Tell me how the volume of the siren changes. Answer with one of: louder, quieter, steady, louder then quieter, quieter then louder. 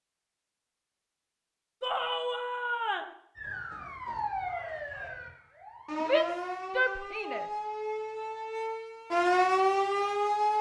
louder.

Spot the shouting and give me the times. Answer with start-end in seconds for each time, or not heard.
1.8-3.1, 6.0-7.5.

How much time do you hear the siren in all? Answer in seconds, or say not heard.
7 s.